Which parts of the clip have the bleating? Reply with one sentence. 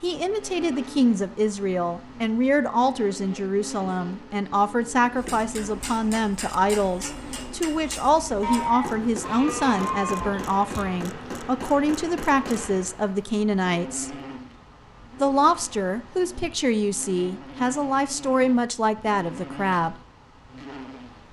You can hear the bleating from 8.4 to 11.1 s.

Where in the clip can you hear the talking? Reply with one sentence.
You can hear the talking from 0.0 to 14.2 s and from 15.2 to 19.9 s.